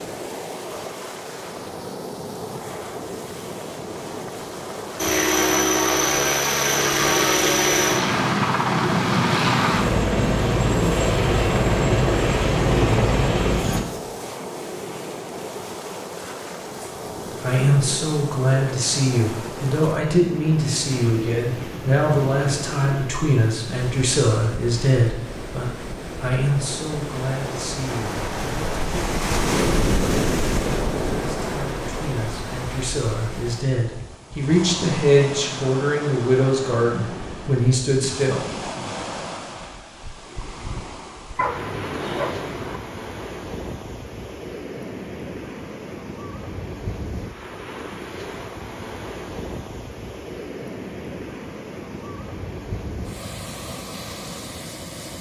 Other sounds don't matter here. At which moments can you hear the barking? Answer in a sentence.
The barking can be heard from 41.4 to 42.8 s.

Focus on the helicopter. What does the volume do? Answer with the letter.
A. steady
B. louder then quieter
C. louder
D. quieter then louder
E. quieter
A.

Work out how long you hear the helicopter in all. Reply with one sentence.
You can hear the helicopter for 9 seconds altogether.